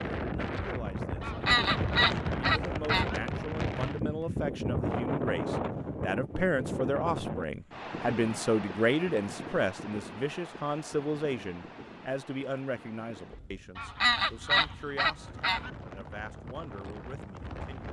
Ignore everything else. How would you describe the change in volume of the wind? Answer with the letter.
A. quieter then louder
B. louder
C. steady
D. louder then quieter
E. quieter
E.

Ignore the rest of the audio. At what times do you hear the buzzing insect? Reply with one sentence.
The buzzing insect can't be heard in this clip.